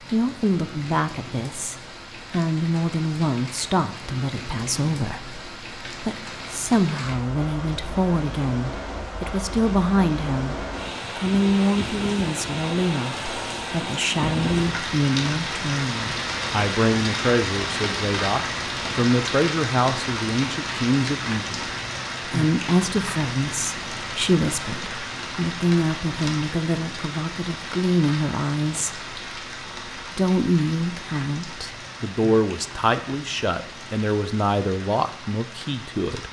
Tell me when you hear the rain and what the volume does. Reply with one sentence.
You can hear the rain from 0.0 to 36.2 s, getting louder then quieter.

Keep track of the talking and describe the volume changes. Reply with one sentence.
The loudness of the talking stays about the same.